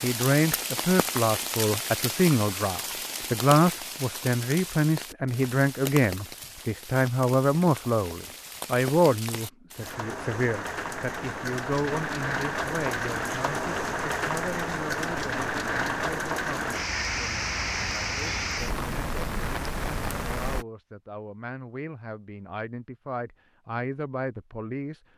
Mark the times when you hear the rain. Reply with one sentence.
The rain can be heard from 0.0 to 20.6 s.